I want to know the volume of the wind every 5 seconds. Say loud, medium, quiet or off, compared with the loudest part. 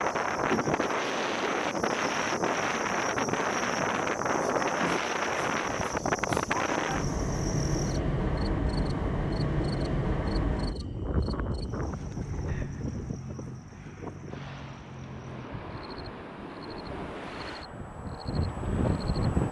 loud, loud, medium, medium.